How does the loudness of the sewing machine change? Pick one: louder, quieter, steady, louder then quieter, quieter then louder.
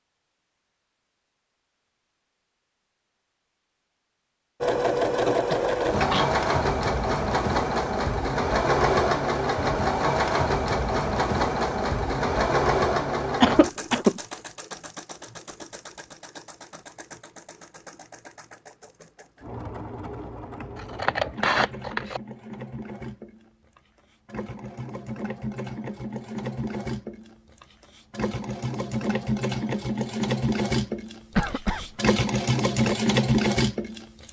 quieter then louder.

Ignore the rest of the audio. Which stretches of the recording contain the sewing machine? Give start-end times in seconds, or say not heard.
4.6-34.2.